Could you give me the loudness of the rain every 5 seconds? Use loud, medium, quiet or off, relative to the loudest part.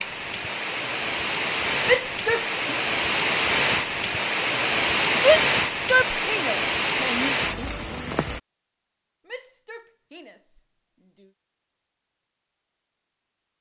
loud, loud, off.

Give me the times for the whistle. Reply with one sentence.
You can't hear the whistle here.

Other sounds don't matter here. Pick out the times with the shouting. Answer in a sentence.
You can hear the shouting from 1.9 to 2.8 s, from 5.2 to 7.3 s and from 9.2 to 11.3 s.